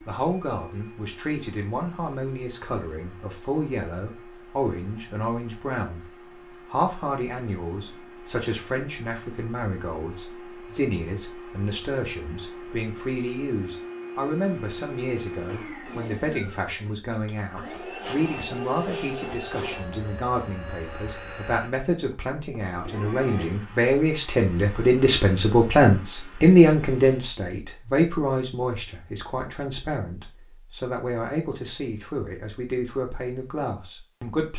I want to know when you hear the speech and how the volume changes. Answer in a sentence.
You can hear the speech from 0.1 to 6.0 s, at a steady volume; and from 6.7 to 34.5 s, getting louder then quieter.